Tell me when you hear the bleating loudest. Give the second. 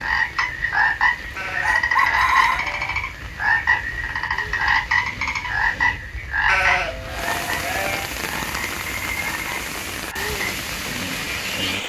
7 s.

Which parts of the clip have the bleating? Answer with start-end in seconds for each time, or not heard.
1.4-3.0, 6.5-8.1.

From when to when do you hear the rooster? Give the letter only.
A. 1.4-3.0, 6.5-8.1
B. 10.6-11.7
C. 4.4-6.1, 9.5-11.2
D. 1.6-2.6
D.